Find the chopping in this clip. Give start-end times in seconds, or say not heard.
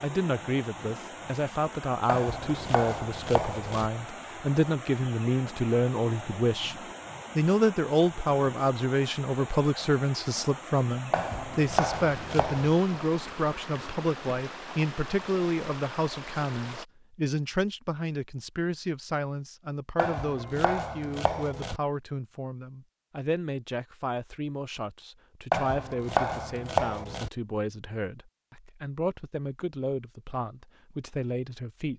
2.0-3.9, 11.1-12.8, 19.9-21.8, 25.5-27.3.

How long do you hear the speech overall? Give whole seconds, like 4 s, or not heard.
31 s.